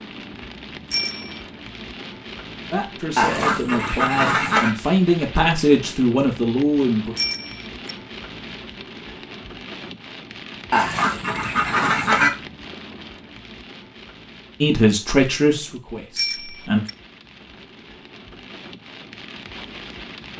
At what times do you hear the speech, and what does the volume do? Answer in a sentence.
The speech can be heard from 2.7 to 7.2 s, getting louder; and briefly from 14.6 to 16.8 s.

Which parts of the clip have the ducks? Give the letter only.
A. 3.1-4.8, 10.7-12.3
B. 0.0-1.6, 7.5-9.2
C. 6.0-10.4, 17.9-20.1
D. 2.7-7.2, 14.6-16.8
A.